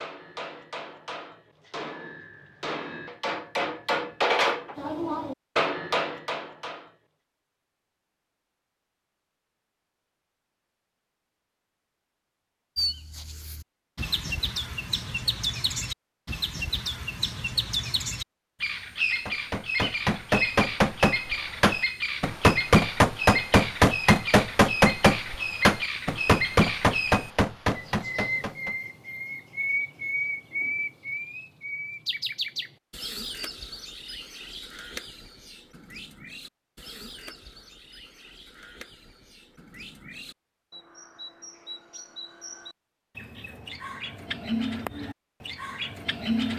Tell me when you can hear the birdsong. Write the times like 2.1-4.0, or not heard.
12.8-46.5.